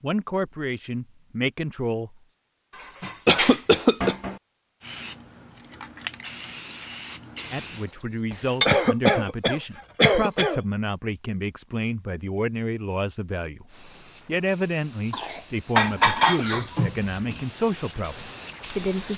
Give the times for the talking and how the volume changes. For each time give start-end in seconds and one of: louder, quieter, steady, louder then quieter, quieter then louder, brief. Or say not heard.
0.0-2.2 brief
7.5-19.1 steady.